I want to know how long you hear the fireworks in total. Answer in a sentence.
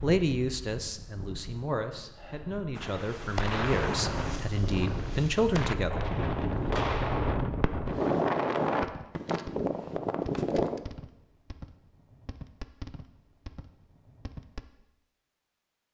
You can hear the fireworks for 11 seconds altogether.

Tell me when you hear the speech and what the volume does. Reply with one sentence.
The speech can be heard from 0.0 to 6.0 s, getting louder.